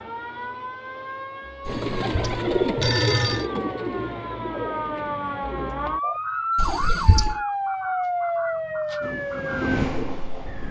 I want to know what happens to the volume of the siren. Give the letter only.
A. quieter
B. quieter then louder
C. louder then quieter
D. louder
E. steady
D.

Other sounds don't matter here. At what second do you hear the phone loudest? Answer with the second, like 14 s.
3 s.